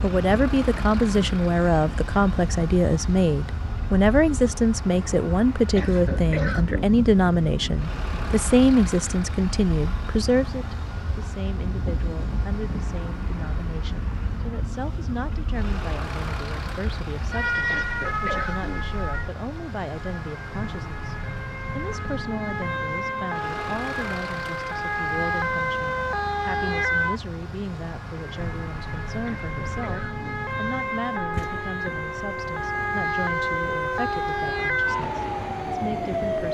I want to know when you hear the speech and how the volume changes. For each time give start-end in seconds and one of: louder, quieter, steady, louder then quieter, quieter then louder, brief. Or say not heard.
0.0-36.4 quieter.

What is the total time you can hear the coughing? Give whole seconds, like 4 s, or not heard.
4 s.